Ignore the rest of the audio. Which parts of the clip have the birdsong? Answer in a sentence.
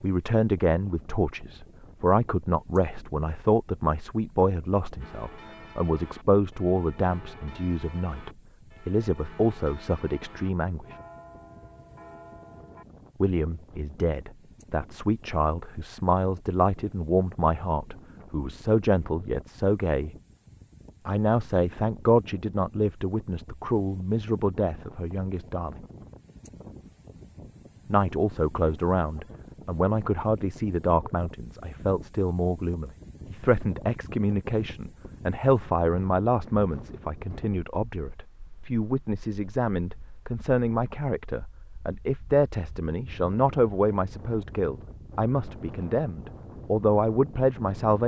The birdsong can't be heard in this clip.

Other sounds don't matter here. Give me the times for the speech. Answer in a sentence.
The speech can be heard from 0.0 to 10.9 s, from 13.2 to 20.1 s, from 21.1 to 25.8 s and from 27.9 to 48.0 s.